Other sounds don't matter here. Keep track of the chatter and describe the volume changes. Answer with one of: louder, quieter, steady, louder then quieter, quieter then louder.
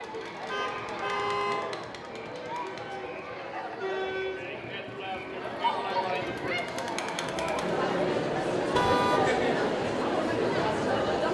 louder.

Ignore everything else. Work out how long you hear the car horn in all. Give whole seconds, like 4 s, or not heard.
2 s.